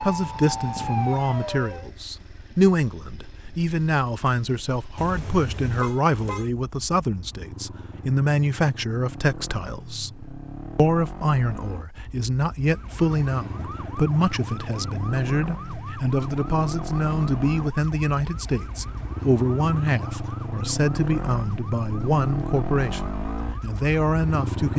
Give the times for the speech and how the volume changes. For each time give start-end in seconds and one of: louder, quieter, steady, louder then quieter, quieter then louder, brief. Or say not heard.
0.0-24.7 steady.